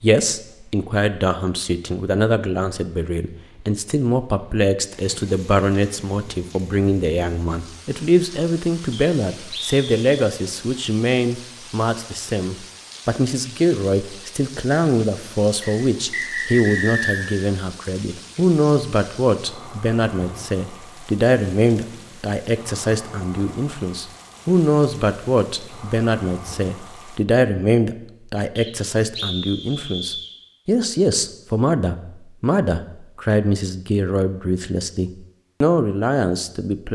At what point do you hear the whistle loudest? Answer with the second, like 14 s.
17 s.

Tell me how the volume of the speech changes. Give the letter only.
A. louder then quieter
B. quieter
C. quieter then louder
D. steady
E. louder
D.